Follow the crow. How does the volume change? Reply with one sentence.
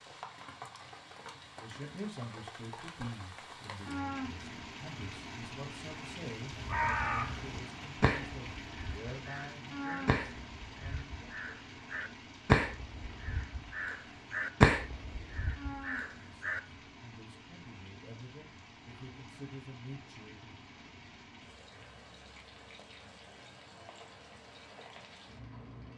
The volume of the crow goes down, then up.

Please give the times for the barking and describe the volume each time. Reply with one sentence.
You can't hear the barking here.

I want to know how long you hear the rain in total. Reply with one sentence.
You can hear the rain for 26 seconds altogether.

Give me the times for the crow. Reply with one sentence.
The crow can be heard from 6.5 to 16.6 s.